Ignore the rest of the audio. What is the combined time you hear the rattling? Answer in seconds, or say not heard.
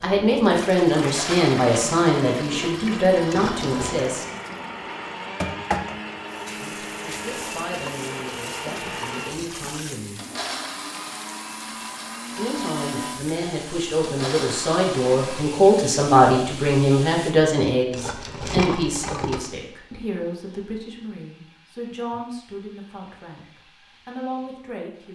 2 s.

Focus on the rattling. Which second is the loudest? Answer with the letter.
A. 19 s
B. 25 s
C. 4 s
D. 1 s
A.